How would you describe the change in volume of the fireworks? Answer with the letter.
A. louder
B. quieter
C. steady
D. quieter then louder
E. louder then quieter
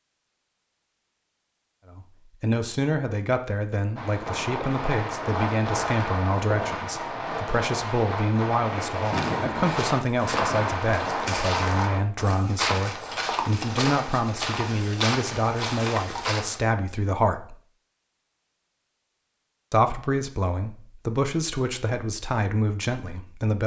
C.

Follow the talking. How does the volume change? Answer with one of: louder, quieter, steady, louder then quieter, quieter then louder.
steady.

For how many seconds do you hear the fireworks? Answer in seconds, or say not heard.
8 s.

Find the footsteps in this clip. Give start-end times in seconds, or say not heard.
9.0-16.6.